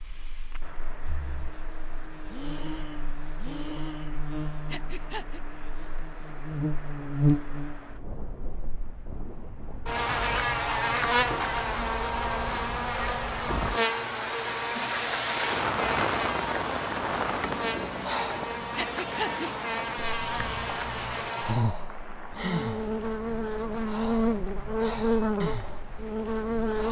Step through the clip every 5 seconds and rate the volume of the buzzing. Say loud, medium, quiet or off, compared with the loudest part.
quiet, loud, loud, medium, loud, loud.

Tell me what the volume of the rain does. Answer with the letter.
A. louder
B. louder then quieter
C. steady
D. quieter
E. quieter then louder
B.